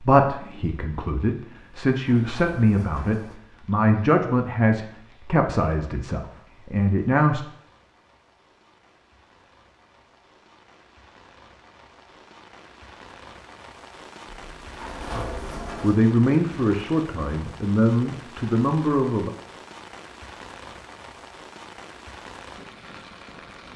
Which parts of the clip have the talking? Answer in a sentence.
The talking can be heard from 0.0 to 7.5 s and from 15.1 to 19.3 s.